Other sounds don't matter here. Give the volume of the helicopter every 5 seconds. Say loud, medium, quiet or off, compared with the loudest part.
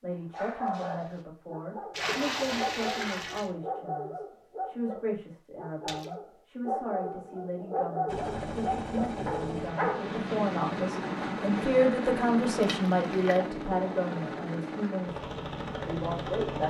off, loud, loud, loud.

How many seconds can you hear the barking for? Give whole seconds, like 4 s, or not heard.
10 s.